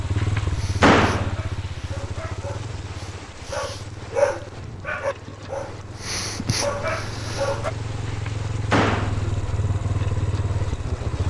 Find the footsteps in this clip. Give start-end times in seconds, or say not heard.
not heard.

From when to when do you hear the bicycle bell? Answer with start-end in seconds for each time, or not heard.
not heard.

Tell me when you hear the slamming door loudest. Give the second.
1 s.